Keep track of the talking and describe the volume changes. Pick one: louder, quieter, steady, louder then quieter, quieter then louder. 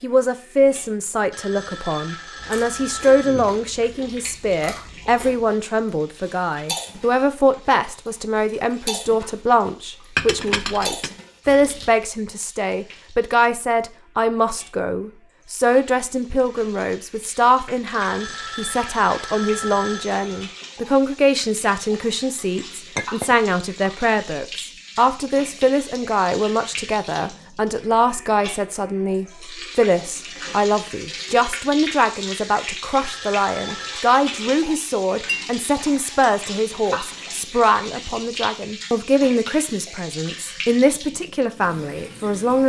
steady.